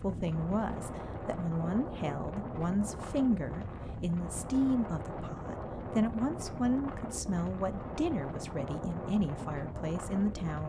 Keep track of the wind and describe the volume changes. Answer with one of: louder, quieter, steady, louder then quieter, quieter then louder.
steady.